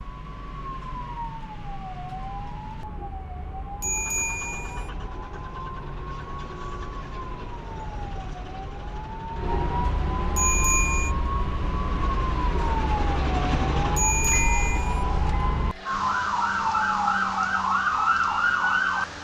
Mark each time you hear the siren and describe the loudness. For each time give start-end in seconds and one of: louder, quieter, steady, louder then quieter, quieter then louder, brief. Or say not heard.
0.0-19.1 louder.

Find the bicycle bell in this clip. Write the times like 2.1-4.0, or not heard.
3.8-4.9, 10.3-11.2, 13.9-15.1.